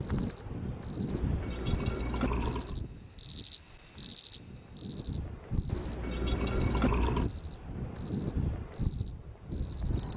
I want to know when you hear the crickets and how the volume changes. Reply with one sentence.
The crickets can be heard from 0.0 to 10.1 s, getting louder then quieter.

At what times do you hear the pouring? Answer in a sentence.
The pouring can be heard from 1.1 to 2.8 s and from 5.7 to 7.3 s.